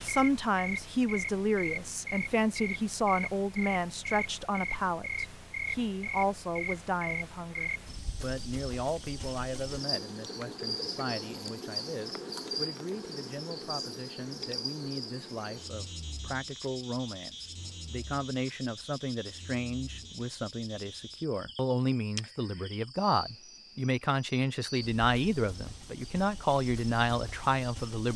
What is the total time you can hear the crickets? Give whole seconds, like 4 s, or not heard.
28 s.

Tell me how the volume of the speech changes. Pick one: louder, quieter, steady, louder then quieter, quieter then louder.
quieter then louder.